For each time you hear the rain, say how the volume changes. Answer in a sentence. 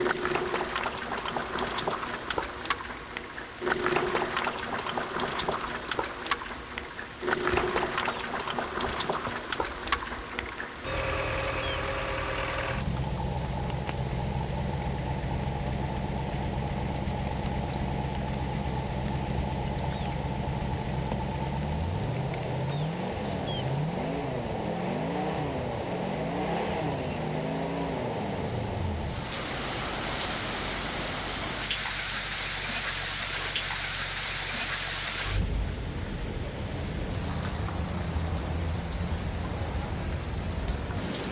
The rain can be heard from 0.0 to 41.2 s, getting louder.